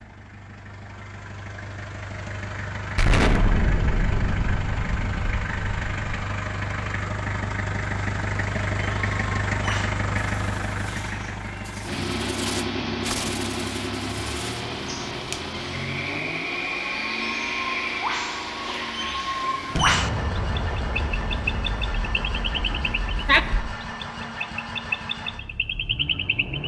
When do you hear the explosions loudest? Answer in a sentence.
The volume of the explosions peaks at 3 seconds.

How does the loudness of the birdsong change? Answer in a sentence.
The volume of the birdsong goes up.